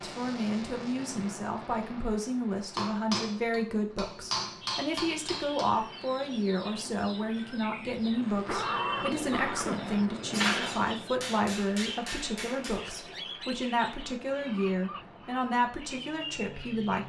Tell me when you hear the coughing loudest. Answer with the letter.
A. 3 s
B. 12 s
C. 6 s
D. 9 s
D.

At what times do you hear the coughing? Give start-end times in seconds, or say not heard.
8.4-9.9.